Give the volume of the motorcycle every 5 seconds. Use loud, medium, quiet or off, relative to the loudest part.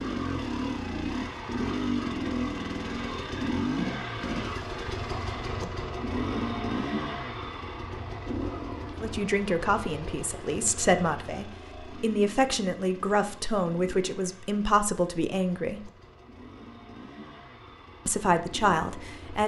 loud, loud, quiet, quiet.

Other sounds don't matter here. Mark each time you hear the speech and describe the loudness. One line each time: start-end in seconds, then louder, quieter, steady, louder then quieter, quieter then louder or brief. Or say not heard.
9.0-15.9 steady
18.1-19.4 brief.